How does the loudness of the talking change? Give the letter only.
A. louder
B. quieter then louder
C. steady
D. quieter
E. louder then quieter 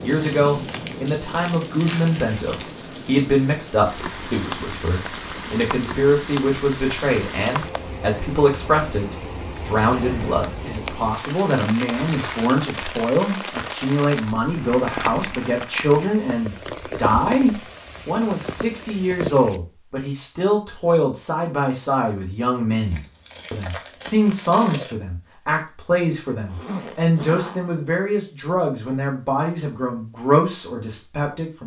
C.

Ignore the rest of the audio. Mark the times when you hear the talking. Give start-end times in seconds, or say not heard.
0.0-31.6.